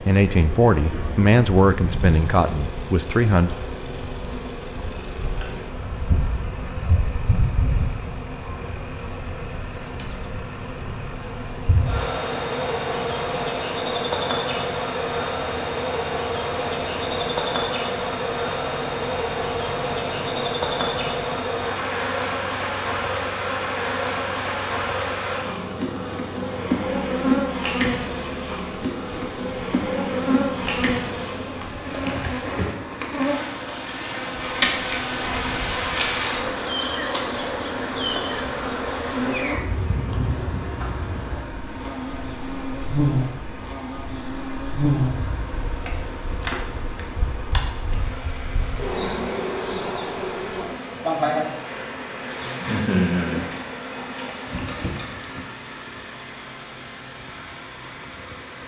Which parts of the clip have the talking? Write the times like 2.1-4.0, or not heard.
0.1-3.5.